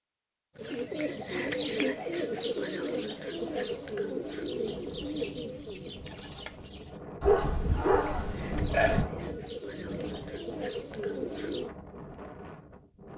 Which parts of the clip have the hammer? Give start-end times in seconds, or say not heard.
not heard.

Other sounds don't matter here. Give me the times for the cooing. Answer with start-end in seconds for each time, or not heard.
0.6-11.7.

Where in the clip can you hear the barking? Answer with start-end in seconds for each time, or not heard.
7.2-9.1.